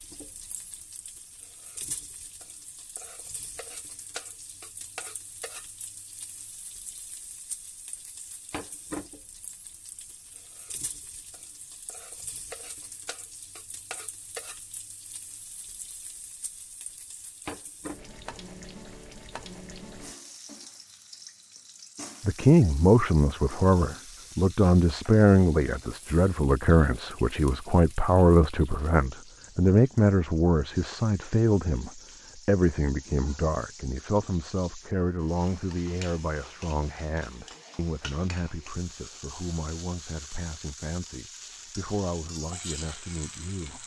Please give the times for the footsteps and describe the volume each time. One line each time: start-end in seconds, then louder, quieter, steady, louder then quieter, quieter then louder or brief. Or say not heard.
not heard.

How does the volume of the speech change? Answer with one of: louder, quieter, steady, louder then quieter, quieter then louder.
quieter.